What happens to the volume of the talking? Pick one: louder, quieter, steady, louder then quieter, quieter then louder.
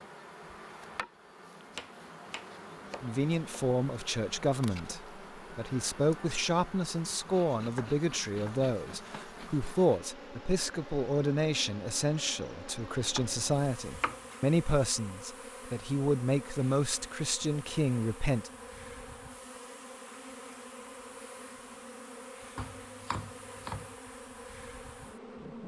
steady.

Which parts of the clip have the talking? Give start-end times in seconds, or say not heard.
3.0-18.5.